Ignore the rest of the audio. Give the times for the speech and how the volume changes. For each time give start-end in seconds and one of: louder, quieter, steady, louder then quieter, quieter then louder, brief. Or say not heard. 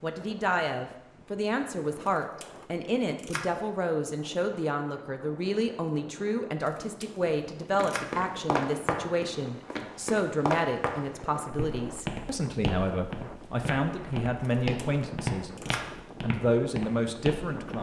0.0-17.7 steady.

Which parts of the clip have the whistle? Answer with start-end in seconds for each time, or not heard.
not heard.